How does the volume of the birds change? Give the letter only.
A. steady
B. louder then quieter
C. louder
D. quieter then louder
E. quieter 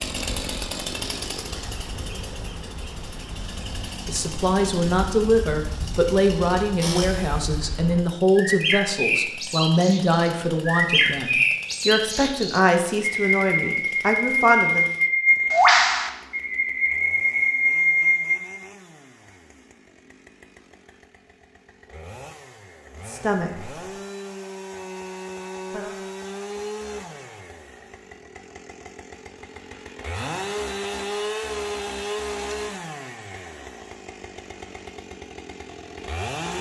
C.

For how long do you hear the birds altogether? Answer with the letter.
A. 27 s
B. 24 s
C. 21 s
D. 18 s
D.